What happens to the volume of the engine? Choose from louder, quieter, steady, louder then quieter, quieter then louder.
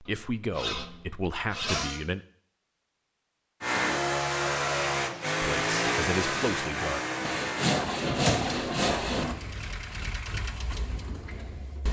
quieter.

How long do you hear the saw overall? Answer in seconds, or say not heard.
4 s.